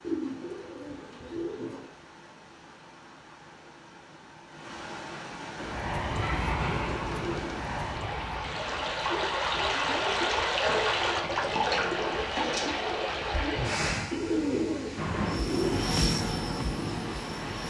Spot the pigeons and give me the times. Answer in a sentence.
You can hear the pigeons from 0.0 to 1.9 s, from 6.2 to 7.6 s and from 14.1 to 15.8 s.